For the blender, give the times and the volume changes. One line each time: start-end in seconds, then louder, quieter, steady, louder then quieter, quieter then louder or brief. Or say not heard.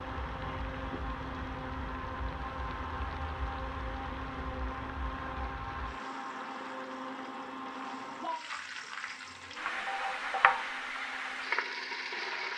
0.0-12.5 quieter.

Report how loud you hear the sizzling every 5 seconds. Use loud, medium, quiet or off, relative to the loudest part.
quiet, medium, loud.